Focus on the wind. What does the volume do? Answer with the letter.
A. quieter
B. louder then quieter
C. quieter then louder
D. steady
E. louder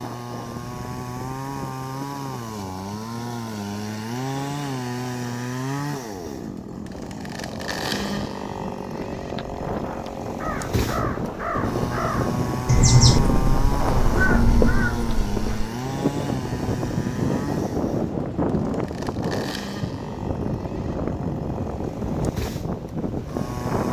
E.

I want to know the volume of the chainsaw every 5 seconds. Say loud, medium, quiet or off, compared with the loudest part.
loud, loud, loud, loud, medium.